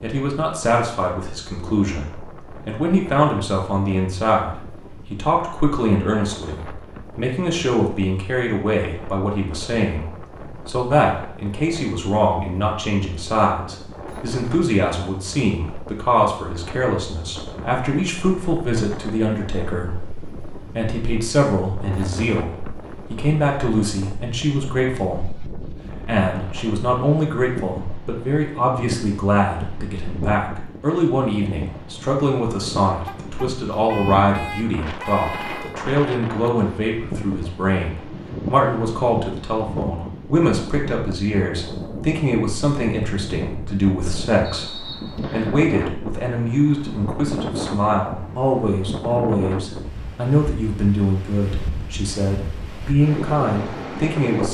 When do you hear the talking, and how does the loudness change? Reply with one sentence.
You can hear the talking from 0.0 to 54.4 s, at a steady volume.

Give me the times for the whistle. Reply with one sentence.
The whistle can be heard from 44.5 to 45.5 s.